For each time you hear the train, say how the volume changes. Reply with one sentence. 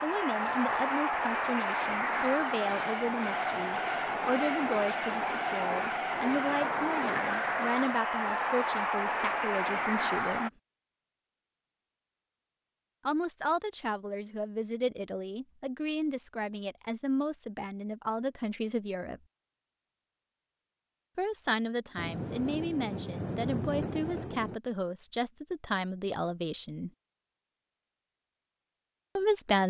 The train can be heard from 0.0 to 10.5 s, at a steady volume; and briefly from 21.9 to 24.6 s.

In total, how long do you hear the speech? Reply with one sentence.
The speech can be heard for 23 seconds in total.